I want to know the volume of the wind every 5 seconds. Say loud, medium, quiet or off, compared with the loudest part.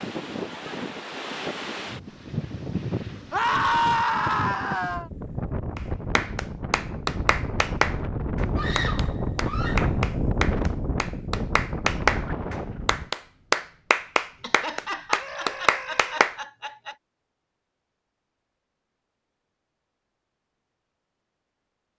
loud, loud, loud, off, off.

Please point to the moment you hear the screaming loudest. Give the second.
4 s.